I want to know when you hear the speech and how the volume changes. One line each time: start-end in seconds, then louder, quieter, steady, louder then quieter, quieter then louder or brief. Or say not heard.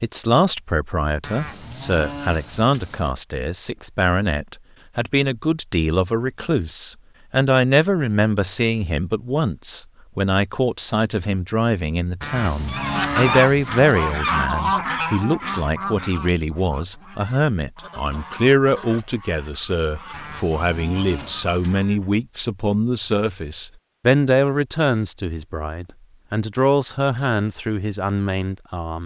0.0-29.0 steady.